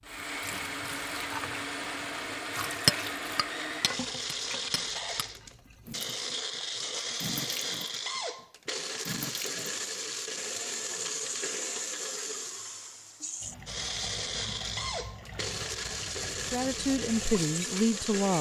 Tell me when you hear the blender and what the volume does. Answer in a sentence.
You can hear the blender from 0.0 to 18.3 s, at a steady volume.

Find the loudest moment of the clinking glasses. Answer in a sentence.
The loudest moment of the clinking glasses is at 3 seconds.